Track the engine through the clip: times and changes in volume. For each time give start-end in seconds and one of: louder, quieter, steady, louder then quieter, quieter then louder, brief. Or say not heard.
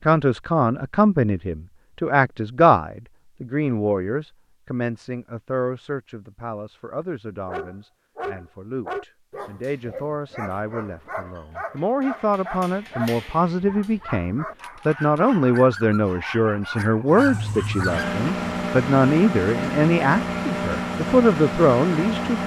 17.1-22.4 steady.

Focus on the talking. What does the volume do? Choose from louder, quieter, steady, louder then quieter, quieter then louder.
quieter then louder.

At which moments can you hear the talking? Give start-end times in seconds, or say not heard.
0.1-22.4.